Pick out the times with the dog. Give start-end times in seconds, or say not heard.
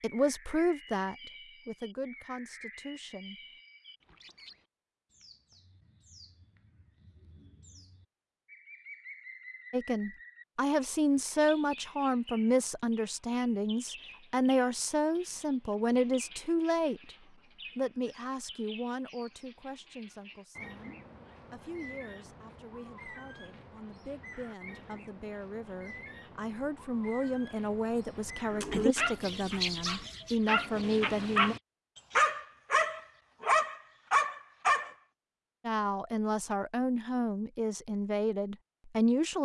28.5-34.9.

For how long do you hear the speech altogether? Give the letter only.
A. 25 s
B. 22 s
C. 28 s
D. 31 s
C.